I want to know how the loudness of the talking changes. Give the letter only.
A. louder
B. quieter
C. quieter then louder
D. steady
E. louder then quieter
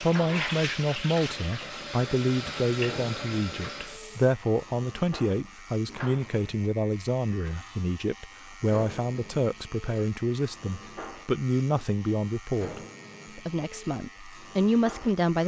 D.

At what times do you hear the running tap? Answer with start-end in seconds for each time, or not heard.
0.0-4.3.